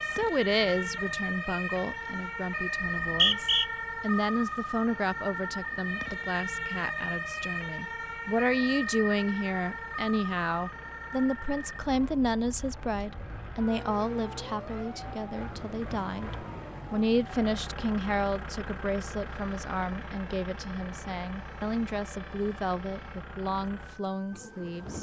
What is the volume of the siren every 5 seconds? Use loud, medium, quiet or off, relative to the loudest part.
loud, loud, medium, quiet, quiet.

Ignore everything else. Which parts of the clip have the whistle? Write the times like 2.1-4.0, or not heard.
2.8-3.6.